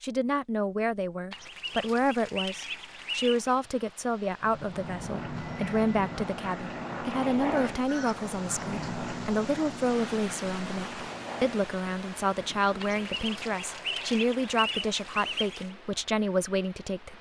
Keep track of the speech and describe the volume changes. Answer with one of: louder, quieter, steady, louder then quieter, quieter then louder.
steady.